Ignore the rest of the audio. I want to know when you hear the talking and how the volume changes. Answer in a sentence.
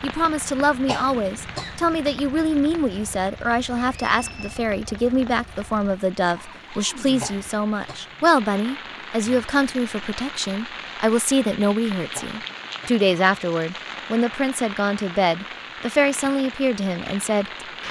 The talking can be heard from 0.0 to 17.5 s, at a steady volume.